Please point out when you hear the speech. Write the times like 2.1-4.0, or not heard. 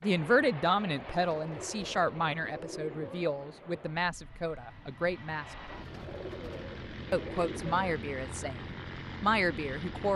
0.0-5.5, 7.1-10.1.